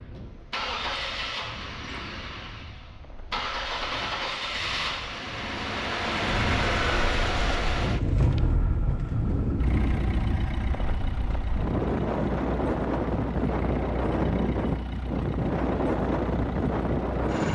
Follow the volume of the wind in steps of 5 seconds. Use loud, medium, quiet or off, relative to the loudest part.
quiet, medium, loud, loud.